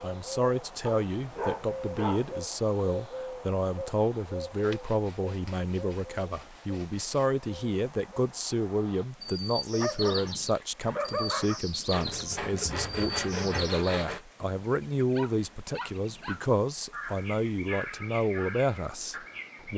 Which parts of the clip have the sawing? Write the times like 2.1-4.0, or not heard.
4.6-7.2, 11.8-14.2.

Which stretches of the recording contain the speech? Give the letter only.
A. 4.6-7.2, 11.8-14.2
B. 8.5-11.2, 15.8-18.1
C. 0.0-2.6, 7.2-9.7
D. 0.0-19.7
D.